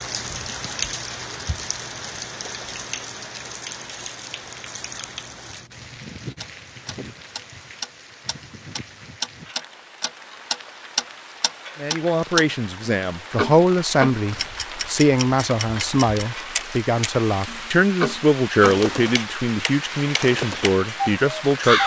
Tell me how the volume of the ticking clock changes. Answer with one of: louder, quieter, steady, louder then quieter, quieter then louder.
quieter then louder.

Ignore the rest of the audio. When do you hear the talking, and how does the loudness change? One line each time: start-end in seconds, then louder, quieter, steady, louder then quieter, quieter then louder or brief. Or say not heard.
11.8-21.8 steady.